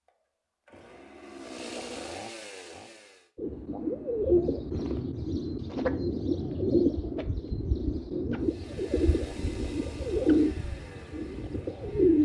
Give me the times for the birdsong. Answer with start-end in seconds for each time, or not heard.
3.4-12.1.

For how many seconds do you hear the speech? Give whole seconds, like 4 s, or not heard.
not heard.